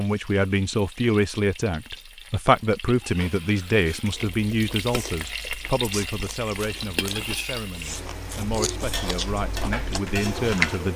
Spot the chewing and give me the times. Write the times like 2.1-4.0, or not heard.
4.0-10.8.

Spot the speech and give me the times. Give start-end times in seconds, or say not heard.
0.0-10.9.